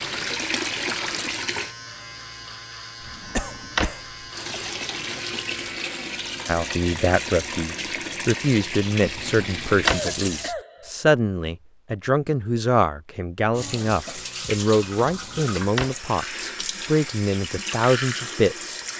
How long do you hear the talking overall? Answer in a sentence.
You can hear the talking for 12 seconds altogether.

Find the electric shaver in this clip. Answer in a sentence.
You can hear the electric shaver from 0.0 to 6.0 s.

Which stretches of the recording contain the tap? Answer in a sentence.
The tap can be heard from 0.0 to 1.8 s, from 4.3 to 10.5 s and from 13.6 to 18.9 s.